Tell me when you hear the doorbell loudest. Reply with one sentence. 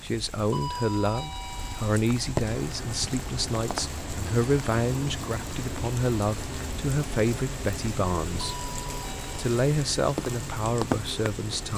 The loudest moment of the doorbell is at 1 second.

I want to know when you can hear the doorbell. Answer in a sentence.
The doorbell can be heard from 0.5 to 1.9 s and from 8.4 to 9.4 s.